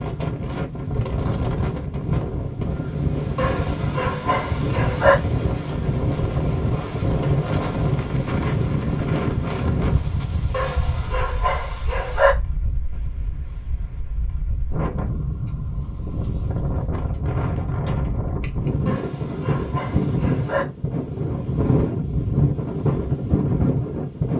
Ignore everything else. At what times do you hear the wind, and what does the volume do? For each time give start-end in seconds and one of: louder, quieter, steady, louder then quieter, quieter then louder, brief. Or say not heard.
0.0-24.3 quieter then louder.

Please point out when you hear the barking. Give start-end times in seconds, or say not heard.
3.4-5.2, 10.5-12.3, 18.9-20.6.